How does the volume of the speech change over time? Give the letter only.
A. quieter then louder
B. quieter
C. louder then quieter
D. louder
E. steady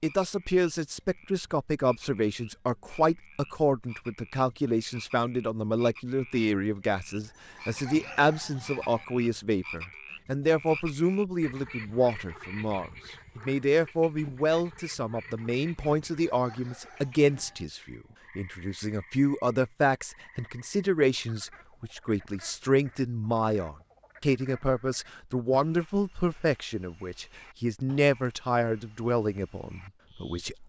E.